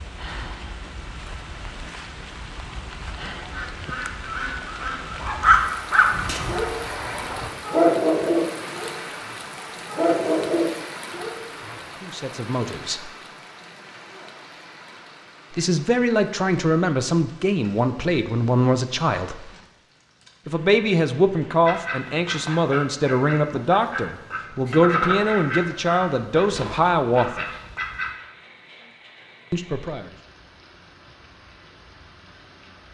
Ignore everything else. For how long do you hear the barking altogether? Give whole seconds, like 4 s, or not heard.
7 s.